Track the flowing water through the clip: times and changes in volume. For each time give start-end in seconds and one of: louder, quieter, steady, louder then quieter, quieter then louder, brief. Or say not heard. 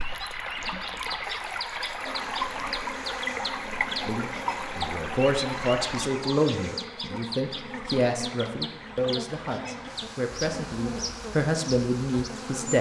0.0-12.7 quieter.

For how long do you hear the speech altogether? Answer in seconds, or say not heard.
9 s.